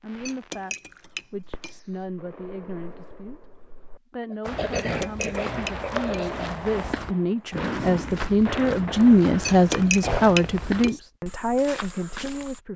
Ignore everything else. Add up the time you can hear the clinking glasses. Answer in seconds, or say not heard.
5 s.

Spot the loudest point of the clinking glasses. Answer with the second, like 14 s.
10 s.